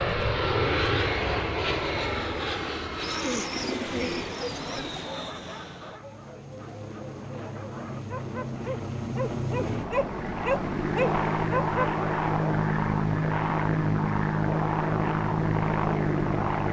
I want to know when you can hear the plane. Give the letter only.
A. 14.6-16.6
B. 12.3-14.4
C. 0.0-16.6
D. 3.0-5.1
C.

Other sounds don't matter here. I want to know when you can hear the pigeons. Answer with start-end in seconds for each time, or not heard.
3.0-5.1.